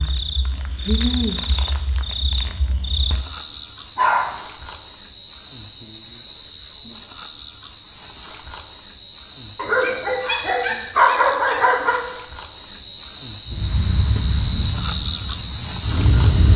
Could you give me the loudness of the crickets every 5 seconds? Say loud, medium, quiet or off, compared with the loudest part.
medium, medium, loud, loud.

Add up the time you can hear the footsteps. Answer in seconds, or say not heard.
not heard.